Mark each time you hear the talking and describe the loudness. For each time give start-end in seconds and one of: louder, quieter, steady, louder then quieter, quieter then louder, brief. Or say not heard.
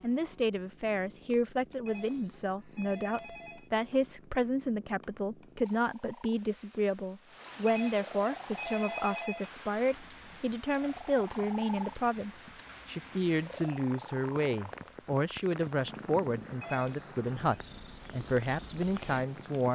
0.0-19.7 steady.